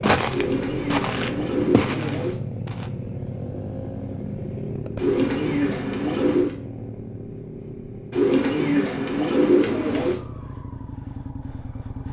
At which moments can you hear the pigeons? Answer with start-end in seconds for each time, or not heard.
0.3-2.4, 5.0-6.5, 8.1-10.2.